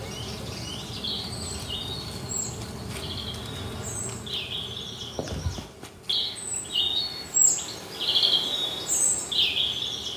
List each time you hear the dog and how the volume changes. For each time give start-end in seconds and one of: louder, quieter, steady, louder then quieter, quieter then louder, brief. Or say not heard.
not heard.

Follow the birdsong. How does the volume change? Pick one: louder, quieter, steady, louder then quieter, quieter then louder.
louder.